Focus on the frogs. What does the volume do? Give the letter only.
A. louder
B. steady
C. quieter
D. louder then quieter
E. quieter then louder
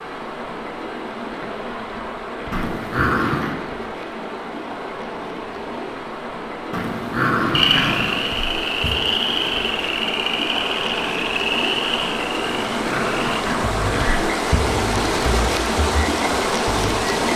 C.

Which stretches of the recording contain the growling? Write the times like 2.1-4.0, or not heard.
2.5-3.5, 6.7-8.2, 12.4-14.2.